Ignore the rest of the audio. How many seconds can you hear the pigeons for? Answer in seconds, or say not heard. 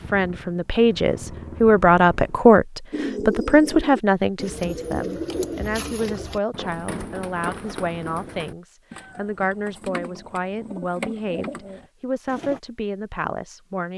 10 s.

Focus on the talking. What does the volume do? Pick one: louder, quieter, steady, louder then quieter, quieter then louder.
quieter.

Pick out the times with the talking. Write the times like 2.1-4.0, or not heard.
0.0-13.9.